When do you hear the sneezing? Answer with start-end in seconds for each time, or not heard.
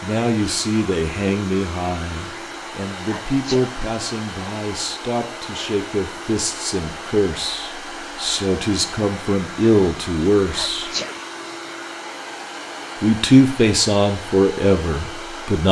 3.0-3.7, 10.4-11.2.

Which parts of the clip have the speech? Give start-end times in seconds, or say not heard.
0.0-10.9, 13.0-15.6.